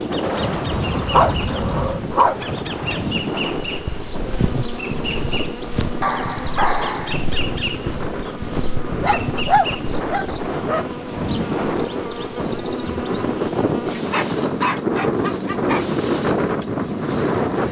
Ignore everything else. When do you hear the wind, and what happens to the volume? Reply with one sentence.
You can hear the wind from 0.0 to 17.6 s, getting quieter then louder.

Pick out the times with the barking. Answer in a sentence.
The barking can be heard from 0.2 to 2.4 s, from 6.0 to 7.2 s, from 9.0 to 10.8 s and from 13.9 to 15.8 s.